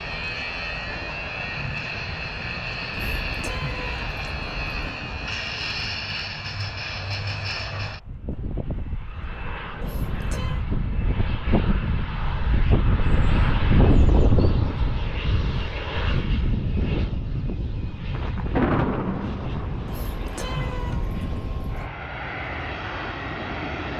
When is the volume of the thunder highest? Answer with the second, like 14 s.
19 s.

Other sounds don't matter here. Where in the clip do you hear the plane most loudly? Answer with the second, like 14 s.
14 s.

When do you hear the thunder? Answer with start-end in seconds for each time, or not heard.
18.1-20.6.